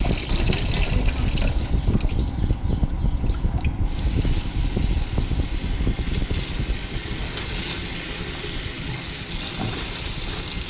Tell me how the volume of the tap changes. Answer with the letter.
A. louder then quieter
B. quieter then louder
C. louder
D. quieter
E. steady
B.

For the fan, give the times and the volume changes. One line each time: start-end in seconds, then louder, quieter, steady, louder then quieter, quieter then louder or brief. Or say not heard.
0.0-10.6 quieter.